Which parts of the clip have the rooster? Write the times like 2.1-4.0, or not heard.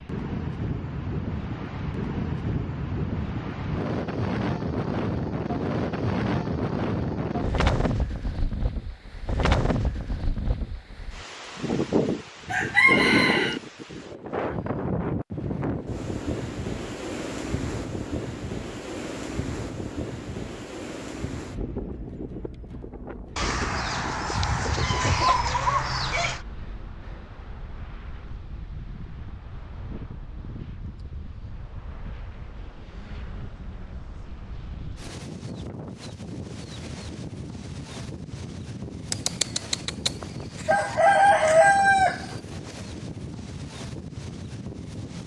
12.4-13.6, 23.4-26.4, 39.1-42.2.